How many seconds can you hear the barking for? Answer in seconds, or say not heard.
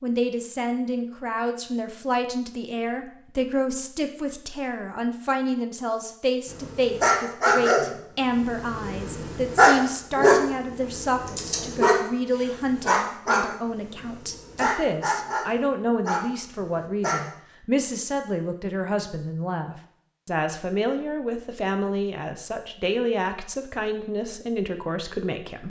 11 s.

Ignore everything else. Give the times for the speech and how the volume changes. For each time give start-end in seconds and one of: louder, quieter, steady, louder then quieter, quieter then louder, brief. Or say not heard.
0.0-25.6 steady.